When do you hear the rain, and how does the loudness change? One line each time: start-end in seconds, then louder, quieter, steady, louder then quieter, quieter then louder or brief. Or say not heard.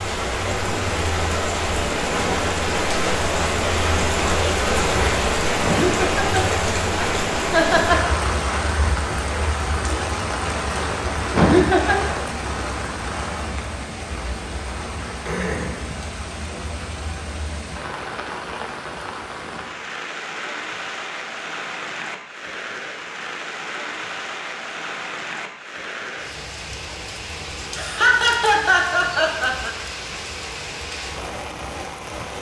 0.0-32.3 quieter.